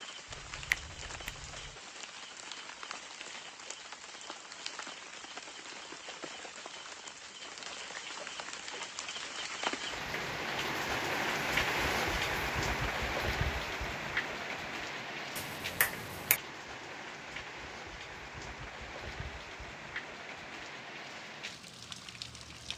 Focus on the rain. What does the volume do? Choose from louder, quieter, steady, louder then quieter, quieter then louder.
louder then quieter.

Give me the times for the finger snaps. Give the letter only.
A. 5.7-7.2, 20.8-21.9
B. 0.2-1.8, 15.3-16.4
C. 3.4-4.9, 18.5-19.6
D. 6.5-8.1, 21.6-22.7
B.